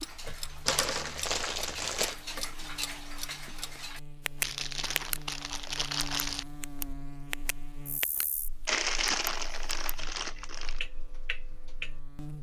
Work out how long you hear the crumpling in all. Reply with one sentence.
You can hear the crumpling for 6 seconds altogether.